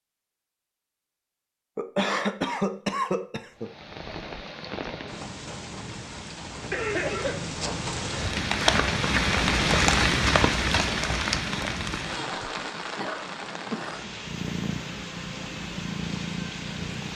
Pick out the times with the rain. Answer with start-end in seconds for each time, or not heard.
3.5-17.1.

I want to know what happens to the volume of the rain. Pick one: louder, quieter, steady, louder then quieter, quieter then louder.
louder then quieter.